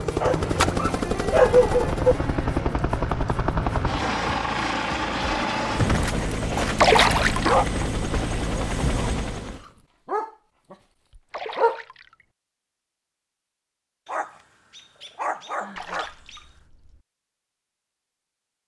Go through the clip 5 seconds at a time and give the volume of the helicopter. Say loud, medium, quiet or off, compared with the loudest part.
loud, loud, off, off.